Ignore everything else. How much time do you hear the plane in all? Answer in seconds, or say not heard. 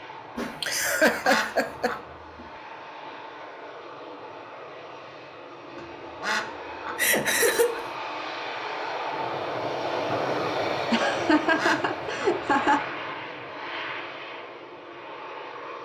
16 s.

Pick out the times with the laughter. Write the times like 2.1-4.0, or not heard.
0.3-1.9, 7.0-7.8, 10.9-12.8.